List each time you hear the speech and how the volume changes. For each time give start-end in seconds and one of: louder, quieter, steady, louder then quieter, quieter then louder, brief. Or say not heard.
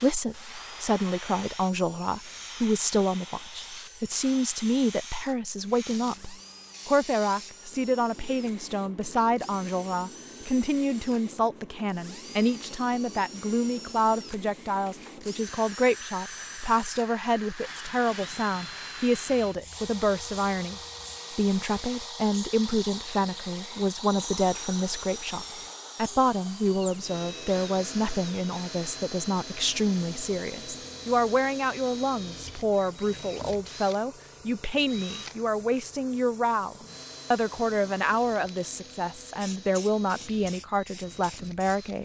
0.0-41.9 steady.